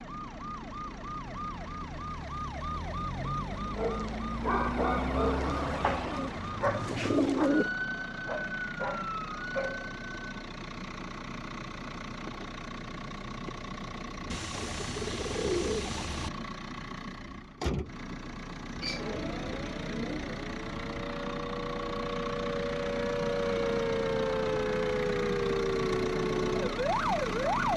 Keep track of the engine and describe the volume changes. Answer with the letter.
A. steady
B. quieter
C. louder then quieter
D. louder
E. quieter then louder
D.